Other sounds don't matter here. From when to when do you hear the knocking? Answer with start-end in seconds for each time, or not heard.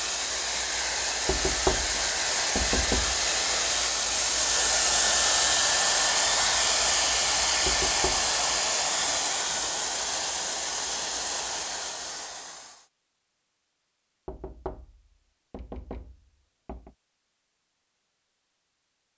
1.2-3.2, 7.7-8.3, 14.2-16.9.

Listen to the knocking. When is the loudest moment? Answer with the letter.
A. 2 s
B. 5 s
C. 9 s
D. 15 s
A.